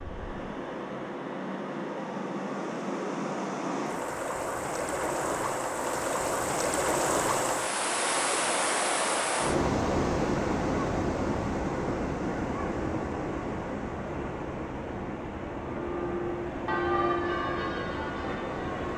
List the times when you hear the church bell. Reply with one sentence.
You can hear the church bell from 15.7 to 18.9 s.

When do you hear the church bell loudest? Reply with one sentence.
The volume of the church bell peaks at 17 seconds.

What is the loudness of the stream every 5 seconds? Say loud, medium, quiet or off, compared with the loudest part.
medium, loud, loud, medium.